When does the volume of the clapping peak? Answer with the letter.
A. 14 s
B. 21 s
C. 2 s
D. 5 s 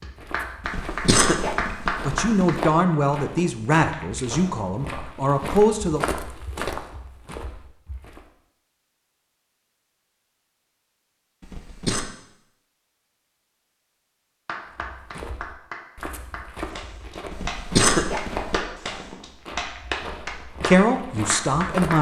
C.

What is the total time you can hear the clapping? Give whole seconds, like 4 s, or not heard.
10 s.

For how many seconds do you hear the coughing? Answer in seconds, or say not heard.
4 s.